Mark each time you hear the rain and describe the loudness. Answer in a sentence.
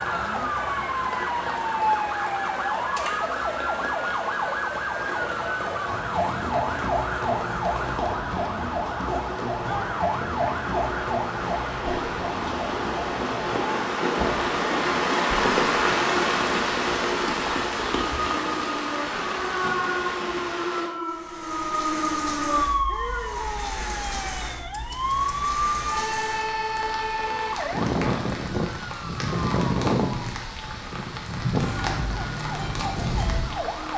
You can hear the rain from 0.0 to 33.9 s, getting louder then quieter.